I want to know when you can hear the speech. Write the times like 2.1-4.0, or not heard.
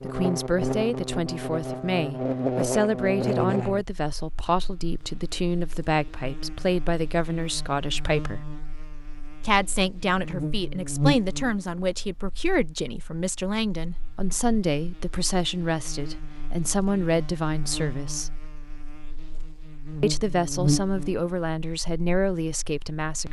0.0-8.5, 9.4-18.4, 20.0-23.2.